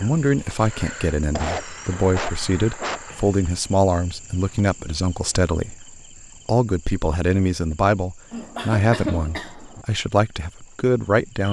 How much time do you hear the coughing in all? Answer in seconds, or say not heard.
3 s.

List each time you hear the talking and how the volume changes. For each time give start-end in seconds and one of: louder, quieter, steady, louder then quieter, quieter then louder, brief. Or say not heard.
0.0-11.4 steady.